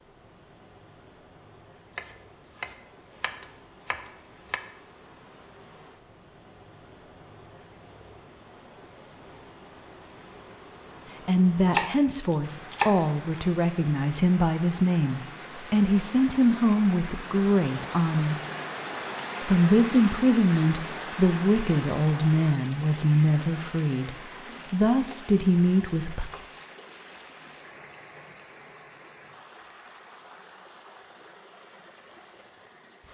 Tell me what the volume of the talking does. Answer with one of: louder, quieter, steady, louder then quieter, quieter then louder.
steady.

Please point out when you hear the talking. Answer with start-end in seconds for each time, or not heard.
11.2-18.4, 19.4-26.2.